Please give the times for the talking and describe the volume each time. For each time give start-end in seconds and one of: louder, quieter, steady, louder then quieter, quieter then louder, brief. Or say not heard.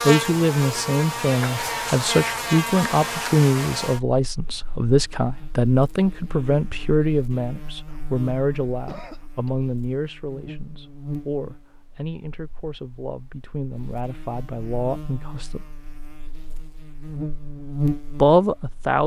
0.1-15.7 quieter
18.2-19.0 brief.